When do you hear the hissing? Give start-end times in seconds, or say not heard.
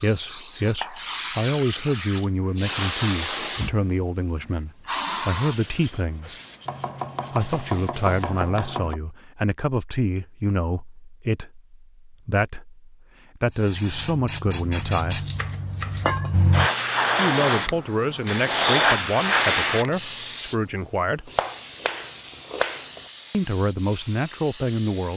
0.0-8.5, 13.5-25.1.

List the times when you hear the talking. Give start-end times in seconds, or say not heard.
0.0-6.3, 7.3-15.2, 17.1-21.3, 23.3-25.1.